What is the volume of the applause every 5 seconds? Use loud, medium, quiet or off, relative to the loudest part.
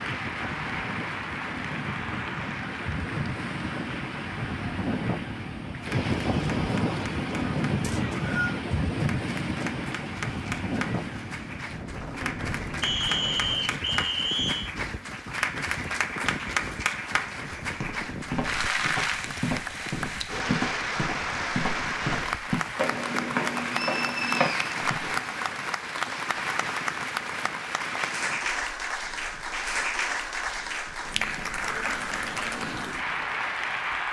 medium, medium, medium, loud, loud, loud, loud.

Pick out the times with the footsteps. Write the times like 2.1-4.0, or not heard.
17.6-25.1.